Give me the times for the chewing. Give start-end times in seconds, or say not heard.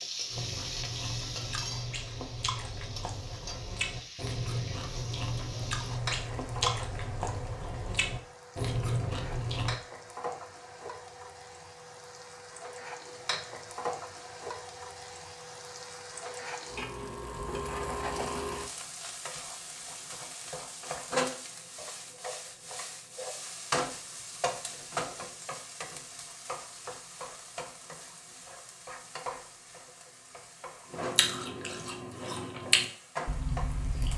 0.3-9.8, 30.9-34.1.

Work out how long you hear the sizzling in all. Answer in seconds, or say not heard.
34 s.